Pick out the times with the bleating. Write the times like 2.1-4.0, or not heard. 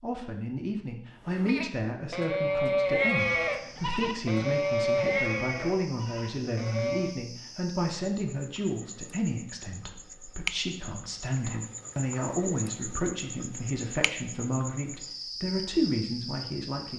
1.2-7.2.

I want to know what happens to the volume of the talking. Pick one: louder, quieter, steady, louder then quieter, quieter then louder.
steady.